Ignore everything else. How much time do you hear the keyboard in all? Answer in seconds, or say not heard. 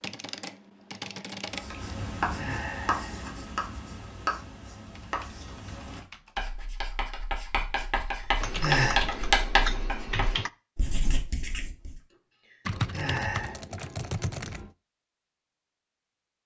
8 s.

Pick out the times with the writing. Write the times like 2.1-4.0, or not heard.
1.5-12.0.